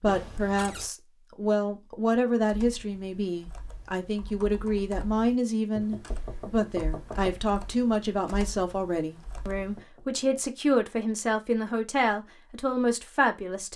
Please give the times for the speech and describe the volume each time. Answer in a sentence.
You can hear the speech from 0.0 to 13.7 s, at a steady volume.